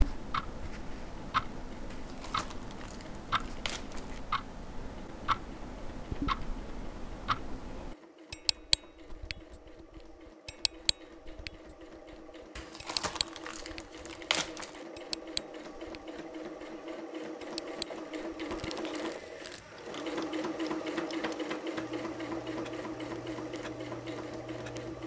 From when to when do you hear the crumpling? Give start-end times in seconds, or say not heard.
1.9-4.2, 12.6-14.8, 18.5-19.7.